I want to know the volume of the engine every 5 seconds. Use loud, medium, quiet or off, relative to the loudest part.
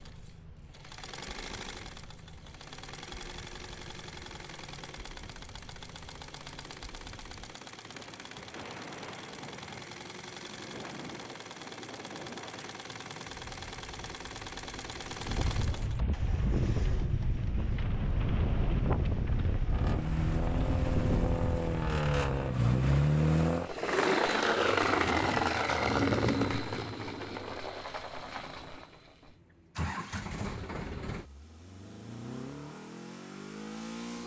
quiet, quiet, quiet, quiet, loud, loud, quiet.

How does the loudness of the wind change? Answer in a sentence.
The loudness of the wind goes up.